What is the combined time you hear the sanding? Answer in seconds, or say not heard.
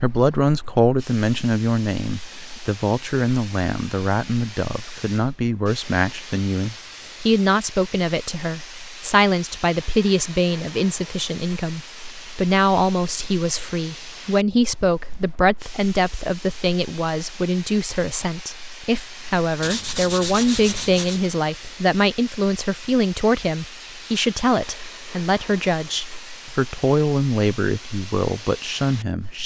2 s.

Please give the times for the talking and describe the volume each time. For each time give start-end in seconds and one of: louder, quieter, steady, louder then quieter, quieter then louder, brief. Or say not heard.
0.0-29.4 steady.